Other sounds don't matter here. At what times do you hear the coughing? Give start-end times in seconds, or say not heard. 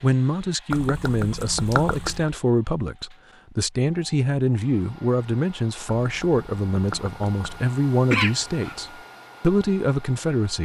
8.1-8.8.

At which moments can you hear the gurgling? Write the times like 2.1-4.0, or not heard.
0.7-2.3, 5.8-7.7.